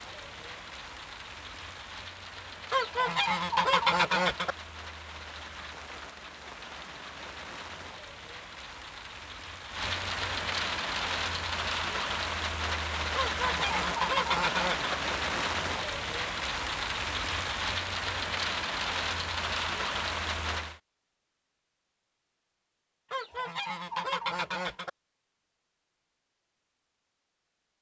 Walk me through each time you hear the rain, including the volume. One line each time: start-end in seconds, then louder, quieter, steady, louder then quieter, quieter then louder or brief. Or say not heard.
0.0-20.8 louder.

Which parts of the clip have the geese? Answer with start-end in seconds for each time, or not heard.
2.7-4.5, 13.2-14.9, 23.1-24.9.